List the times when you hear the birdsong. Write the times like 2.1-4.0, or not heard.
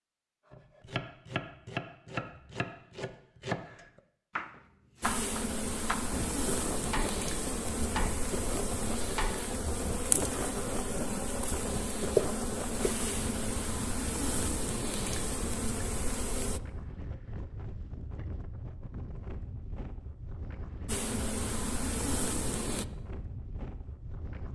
not heard.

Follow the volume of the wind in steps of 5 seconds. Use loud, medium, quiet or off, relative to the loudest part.
off, loud, loud, medium, medium.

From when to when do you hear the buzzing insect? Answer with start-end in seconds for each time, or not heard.
5.0-16.6, 20.9-22.9.